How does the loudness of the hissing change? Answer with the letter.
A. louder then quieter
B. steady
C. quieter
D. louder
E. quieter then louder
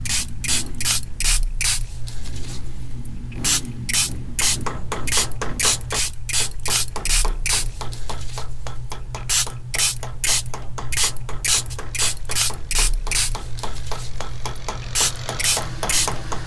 B.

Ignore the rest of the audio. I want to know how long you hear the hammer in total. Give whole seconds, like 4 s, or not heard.
12 s.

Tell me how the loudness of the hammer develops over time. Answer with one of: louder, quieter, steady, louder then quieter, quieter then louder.
quieter then louder.